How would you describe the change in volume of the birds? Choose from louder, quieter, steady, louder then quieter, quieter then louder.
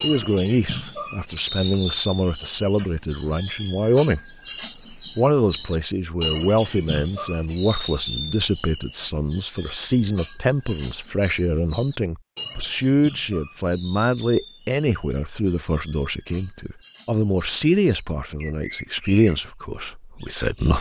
quieter.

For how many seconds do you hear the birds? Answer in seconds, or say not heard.
21 s.